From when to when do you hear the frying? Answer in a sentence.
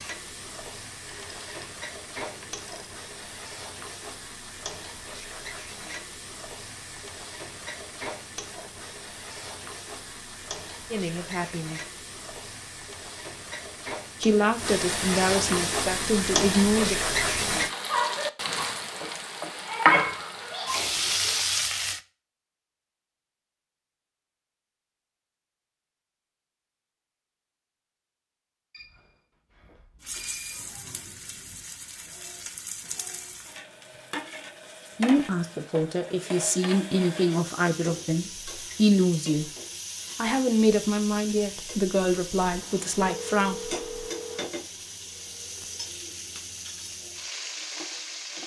You can hear the frying from 0.0 to 22.0 s and from 30.0 to 48.4 s.